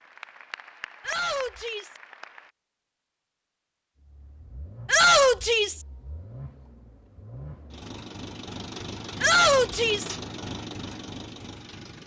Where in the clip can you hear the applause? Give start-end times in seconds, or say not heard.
0.0-2.5.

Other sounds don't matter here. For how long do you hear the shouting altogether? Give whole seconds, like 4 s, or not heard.
3 s.